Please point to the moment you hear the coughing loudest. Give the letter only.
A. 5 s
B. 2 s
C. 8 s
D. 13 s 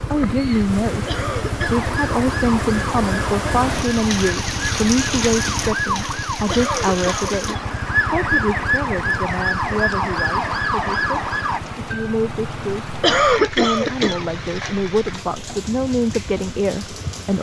D.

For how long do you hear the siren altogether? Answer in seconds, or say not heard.
10 s.